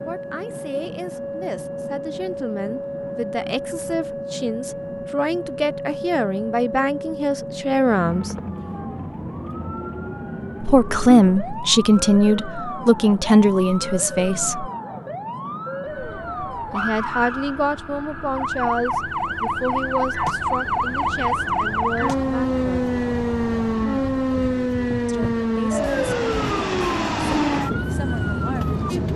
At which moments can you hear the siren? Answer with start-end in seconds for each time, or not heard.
0.0-29.1.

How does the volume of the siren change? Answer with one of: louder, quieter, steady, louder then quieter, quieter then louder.
louder.